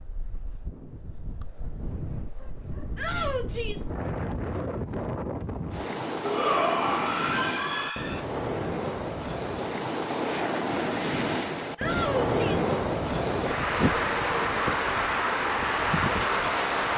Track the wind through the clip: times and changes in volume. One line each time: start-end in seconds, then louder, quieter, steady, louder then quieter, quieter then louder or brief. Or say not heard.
0.0-16.9 louder.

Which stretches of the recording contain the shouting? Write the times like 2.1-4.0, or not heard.
3.0-3.9, 6.2-8.2, 11.8-12.7.